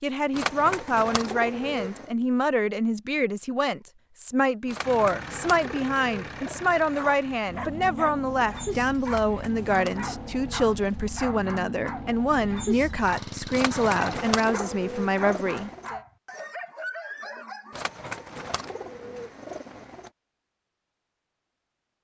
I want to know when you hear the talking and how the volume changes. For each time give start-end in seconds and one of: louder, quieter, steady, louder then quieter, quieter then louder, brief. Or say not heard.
0.0-16.0 steady.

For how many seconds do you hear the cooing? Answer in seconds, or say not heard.
11 s.